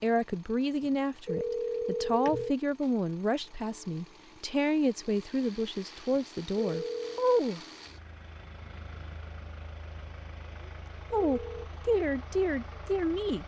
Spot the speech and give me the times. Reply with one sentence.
The speech can be heard from 0.0 to 7.6 s and from 11.1 to 13.4 s.